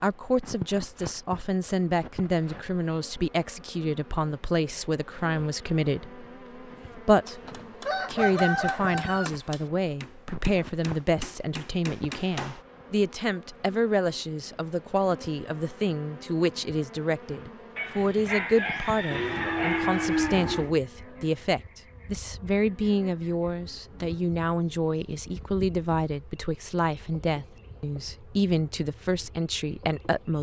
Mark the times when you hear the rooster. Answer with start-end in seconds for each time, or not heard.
7.2-9.3, 17.8-20.4.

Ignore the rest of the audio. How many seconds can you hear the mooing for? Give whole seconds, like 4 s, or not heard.
2 s.